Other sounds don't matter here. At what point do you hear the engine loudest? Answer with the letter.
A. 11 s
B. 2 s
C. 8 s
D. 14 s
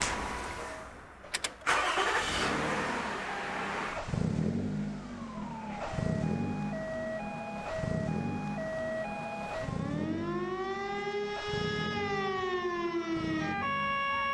B.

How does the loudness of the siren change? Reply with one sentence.
The loudness of the siren goes up.